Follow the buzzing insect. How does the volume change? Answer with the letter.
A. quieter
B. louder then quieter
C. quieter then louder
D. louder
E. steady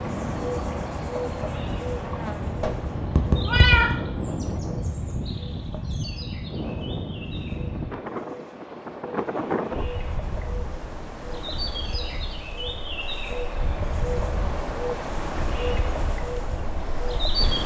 C.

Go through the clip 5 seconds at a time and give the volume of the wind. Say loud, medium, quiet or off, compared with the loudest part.
loud, loud, medium, loud.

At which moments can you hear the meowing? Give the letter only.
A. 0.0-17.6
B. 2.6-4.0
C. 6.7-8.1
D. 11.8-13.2
B.